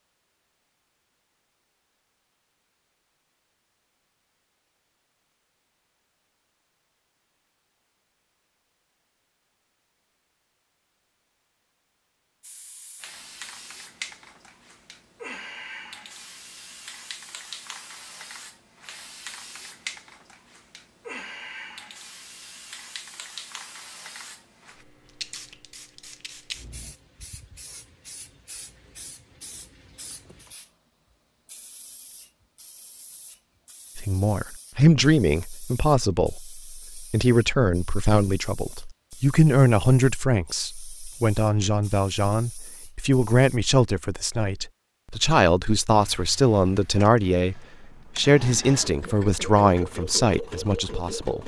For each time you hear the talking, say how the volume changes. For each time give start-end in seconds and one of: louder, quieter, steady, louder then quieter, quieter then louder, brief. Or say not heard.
34.0-51.4 steady.